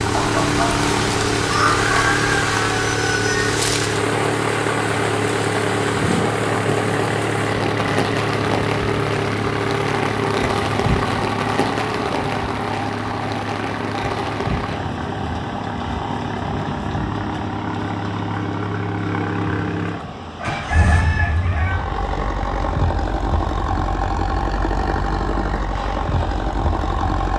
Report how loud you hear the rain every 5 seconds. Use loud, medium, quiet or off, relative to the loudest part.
loud, loud, loud, medium, medium, quiet.